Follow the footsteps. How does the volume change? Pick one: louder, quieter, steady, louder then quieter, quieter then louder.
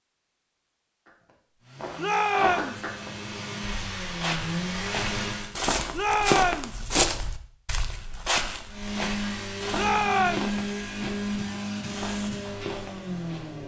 quieter.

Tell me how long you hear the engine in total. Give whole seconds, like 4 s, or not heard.
9 s.